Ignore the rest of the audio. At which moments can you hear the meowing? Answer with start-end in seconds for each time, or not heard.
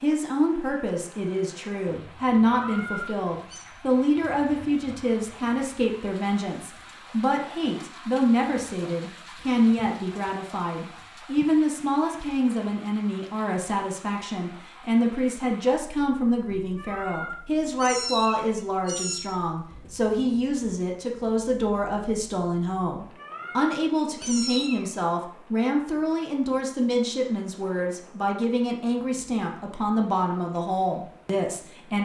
2.5-3.6, 16.8-19.3, 23.1-24.9.